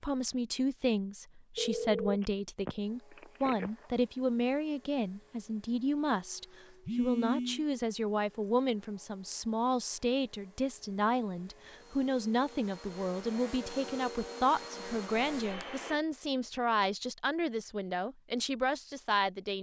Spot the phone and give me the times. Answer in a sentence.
You can hear the phone from 1.6 to 3.7 s, from 6.8 to 7.7 s and from 15.2 to 15.8 s.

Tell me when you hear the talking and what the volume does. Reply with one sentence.
The talking can be heard from 0.0 to 19.5 s, at a steady volume.